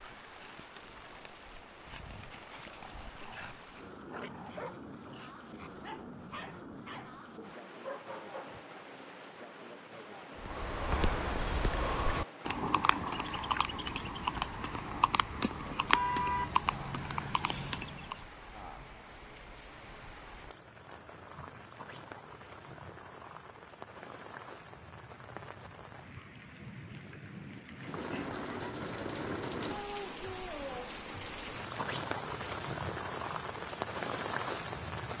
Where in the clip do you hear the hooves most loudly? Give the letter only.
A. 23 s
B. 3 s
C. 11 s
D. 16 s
D.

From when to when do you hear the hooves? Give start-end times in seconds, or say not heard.
10.3-18.2.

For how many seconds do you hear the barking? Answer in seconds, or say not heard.
7 s.